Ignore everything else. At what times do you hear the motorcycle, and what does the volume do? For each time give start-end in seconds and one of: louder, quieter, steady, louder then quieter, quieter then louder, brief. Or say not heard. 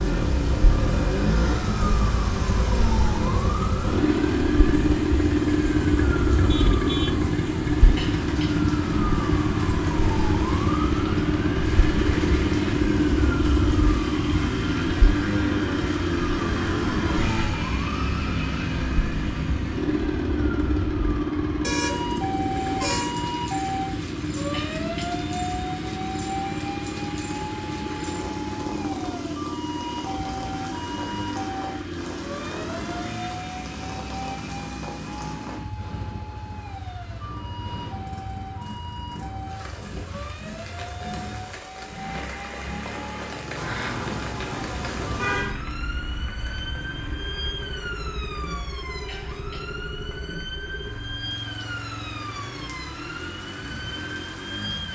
0.0-54.8 quieter.